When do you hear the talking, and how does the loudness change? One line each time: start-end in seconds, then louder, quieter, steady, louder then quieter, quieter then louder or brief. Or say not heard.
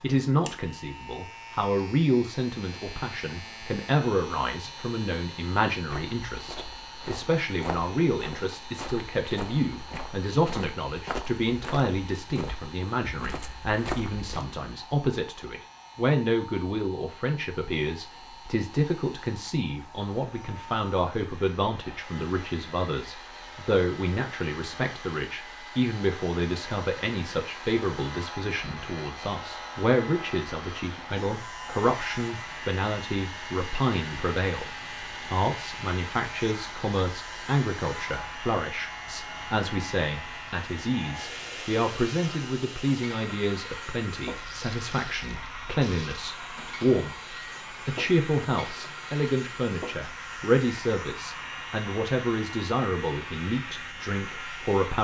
0.0-54.9 steady.